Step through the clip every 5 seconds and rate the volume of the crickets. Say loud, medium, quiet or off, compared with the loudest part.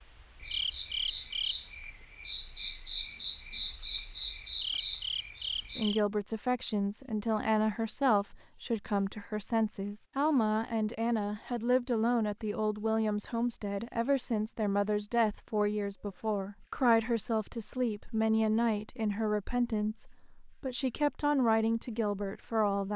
loud, loud, loud, medium, medium.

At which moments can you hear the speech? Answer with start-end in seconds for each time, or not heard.
5.8-22.9.